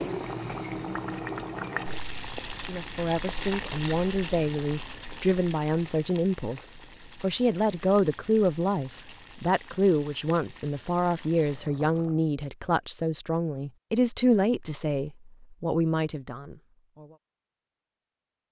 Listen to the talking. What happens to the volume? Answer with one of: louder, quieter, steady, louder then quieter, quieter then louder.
steady.